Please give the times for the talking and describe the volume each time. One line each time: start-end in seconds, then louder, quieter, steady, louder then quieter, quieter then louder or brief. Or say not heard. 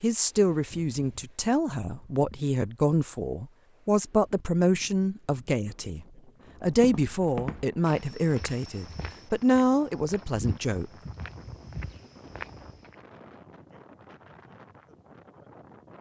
0.0-10.8 steady.